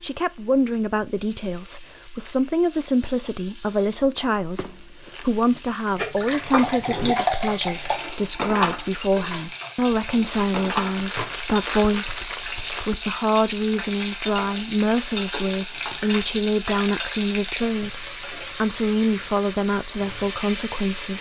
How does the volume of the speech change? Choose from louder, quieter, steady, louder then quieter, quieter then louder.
steady.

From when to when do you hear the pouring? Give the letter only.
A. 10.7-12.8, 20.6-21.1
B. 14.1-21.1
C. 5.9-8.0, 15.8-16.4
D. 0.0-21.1
C.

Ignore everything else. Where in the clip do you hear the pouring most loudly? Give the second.
7 s.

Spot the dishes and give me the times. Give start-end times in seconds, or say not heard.
6.0-13.0.